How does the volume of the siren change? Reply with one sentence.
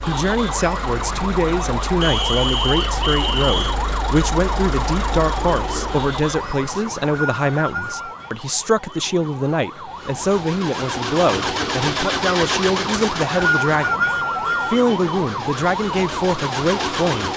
The loudness of the siren goes down, then up.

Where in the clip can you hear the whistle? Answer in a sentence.
The whistle can be heard from 2.0 to 3.8 s, from 6.7 to 8.3 s and from 12.9 to 14.8 s.